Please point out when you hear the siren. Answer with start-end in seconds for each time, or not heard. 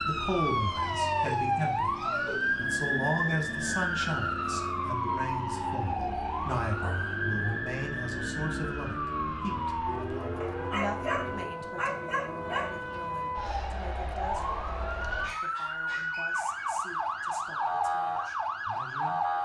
0.0-19.4.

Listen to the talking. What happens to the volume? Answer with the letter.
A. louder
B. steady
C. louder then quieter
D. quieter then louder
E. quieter
E.